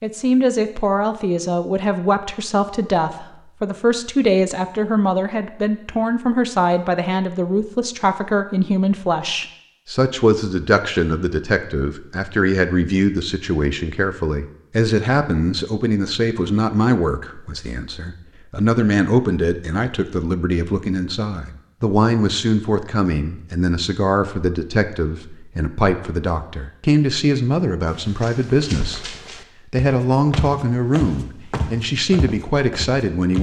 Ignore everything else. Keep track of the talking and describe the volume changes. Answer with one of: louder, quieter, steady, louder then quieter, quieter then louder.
steady.